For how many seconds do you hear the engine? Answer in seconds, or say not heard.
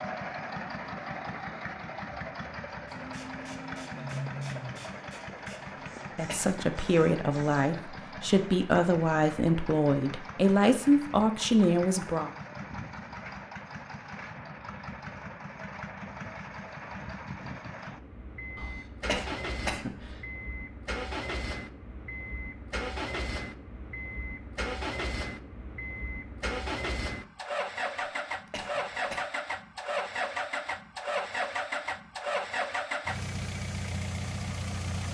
35 s.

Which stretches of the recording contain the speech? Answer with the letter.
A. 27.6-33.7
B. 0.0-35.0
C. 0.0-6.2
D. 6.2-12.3
D.